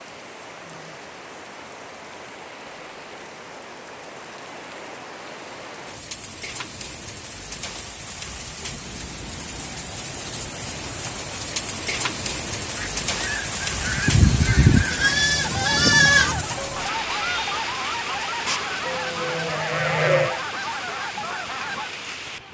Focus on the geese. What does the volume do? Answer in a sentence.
The loudness of the geese stays about the same.